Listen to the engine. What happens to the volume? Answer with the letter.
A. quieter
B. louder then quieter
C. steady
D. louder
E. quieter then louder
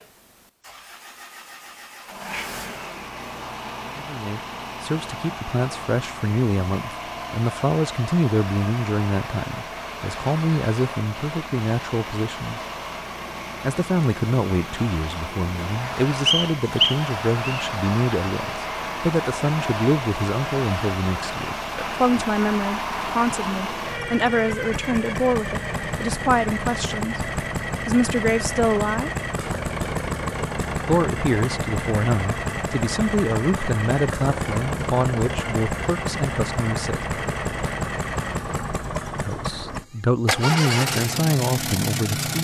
D.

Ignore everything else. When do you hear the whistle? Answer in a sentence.
You can hear the whistle from 16.2 to 17.6 s.